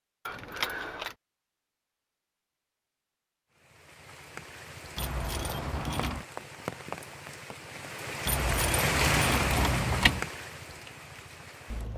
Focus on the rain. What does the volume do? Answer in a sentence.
The volume of the rain goes up, then down.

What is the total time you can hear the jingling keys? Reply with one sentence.
You can hear the jingling keys for 4 seconds altogether.